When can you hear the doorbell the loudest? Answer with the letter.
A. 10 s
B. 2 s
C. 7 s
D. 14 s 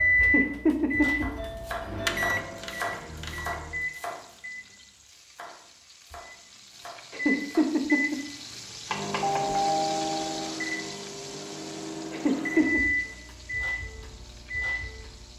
A.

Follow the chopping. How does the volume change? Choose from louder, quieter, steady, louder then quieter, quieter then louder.
quieter then louder.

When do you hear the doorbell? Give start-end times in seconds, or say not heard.
1.4-2.9, 9.2-10.5.